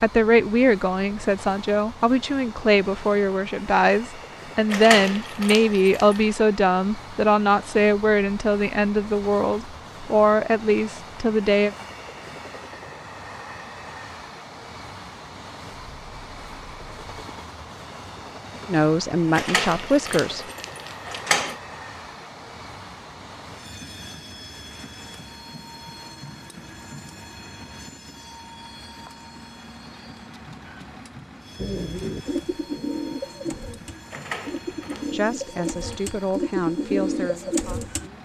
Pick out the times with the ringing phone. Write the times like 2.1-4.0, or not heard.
not heard.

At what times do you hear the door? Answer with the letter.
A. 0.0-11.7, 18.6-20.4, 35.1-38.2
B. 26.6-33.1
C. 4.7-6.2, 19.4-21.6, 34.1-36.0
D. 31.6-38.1
C.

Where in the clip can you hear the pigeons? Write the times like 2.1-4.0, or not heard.
31.6-38.1.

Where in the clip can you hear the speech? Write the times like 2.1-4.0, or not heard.
0.0-11.7, 18.6-20.4, 35.1-38.2.